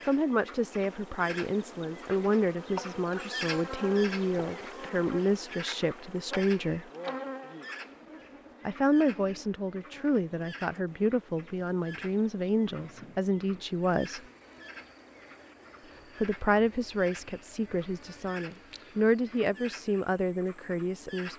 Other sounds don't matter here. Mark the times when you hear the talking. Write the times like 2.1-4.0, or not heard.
0.1-6.8, 8.7-14.2, 16.2-21.3.